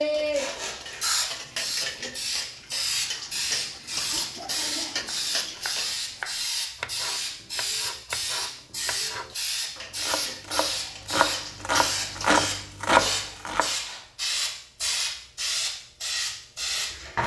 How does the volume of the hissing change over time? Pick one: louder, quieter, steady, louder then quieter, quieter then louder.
steady.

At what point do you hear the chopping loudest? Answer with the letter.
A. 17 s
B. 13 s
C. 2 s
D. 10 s
B.